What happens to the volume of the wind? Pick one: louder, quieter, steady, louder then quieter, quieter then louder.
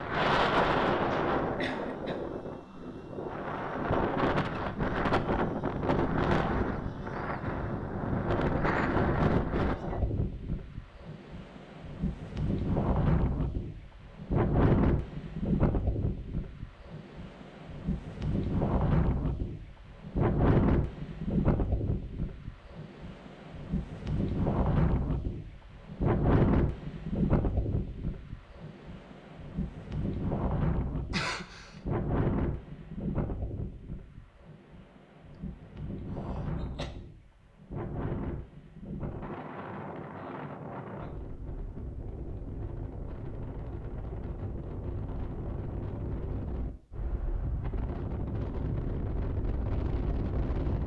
quieter.